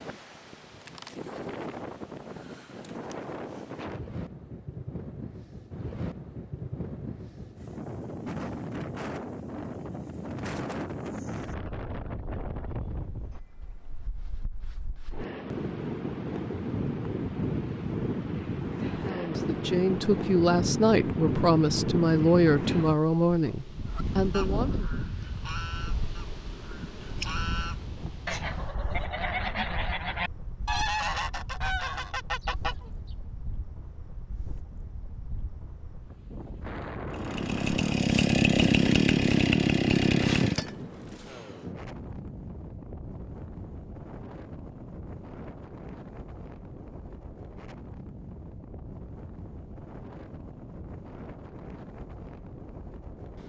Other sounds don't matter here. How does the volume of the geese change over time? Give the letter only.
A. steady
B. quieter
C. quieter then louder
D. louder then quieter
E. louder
E.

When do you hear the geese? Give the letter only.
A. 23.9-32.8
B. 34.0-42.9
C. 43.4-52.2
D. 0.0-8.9
A.